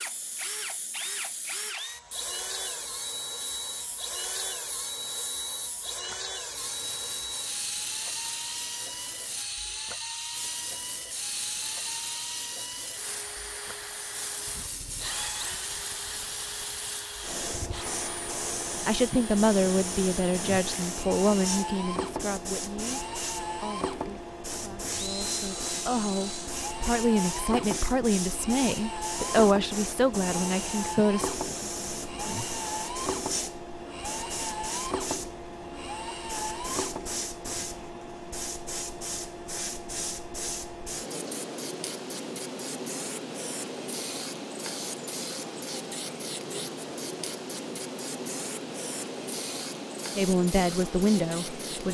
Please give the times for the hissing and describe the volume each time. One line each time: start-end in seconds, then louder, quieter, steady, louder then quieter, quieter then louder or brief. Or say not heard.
0.0-51.8 louder.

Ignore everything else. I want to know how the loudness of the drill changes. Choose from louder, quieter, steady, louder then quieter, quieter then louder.
steady.